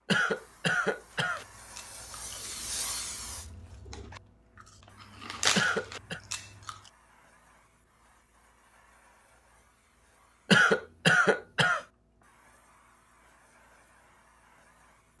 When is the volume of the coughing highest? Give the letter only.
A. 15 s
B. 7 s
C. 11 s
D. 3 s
C.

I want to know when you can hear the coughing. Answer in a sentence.
You can hear the coughing from 0.1 to 1.4 s, from 5.5 to 6.2 s and from 10.5 to 11.8 s.